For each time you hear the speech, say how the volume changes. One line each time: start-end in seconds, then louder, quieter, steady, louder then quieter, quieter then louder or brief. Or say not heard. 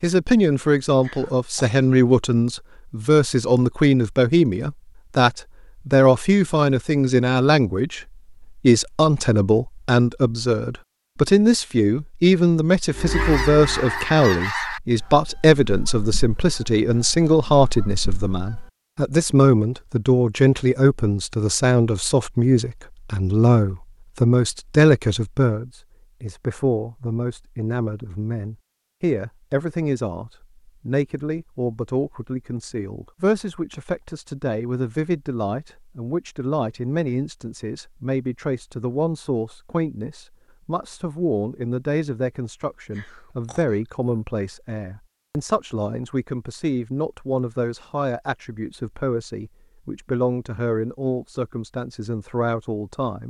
0.0-53.2 quieter.